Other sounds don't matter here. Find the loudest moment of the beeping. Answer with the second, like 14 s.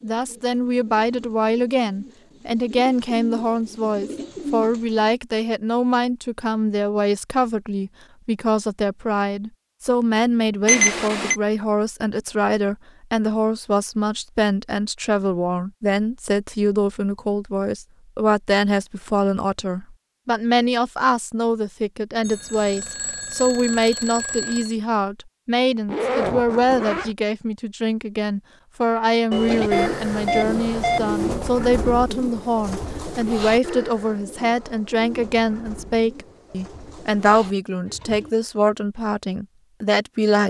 11 s.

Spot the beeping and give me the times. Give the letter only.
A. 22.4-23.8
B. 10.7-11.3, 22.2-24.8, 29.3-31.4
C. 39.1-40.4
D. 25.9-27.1
B.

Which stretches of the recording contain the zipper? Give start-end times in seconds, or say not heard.
25.9-27.1.